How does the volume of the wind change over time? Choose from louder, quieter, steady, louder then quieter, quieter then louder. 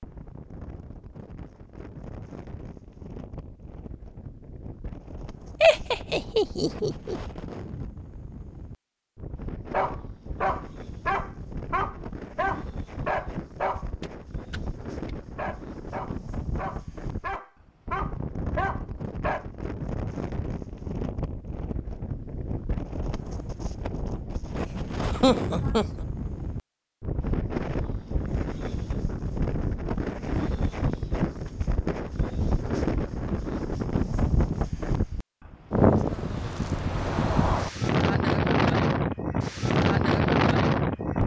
louder.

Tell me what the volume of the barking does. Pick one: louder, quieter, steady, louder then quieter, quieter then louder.
quieter then louder.